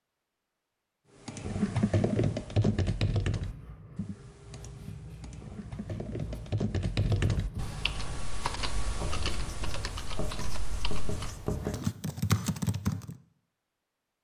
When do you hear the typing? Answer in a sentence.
The typing can be heard from 1.2 to 13.2 s.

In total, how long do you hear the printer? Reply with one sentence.
The printer can't be heard in this clip.